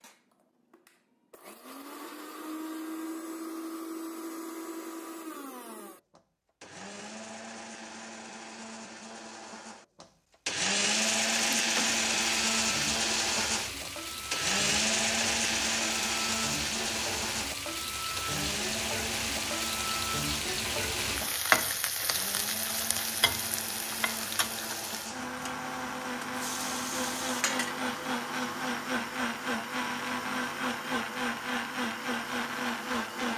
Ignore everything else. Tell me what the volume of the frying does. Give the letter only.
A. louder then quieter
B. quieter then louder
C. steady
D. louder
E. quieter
A.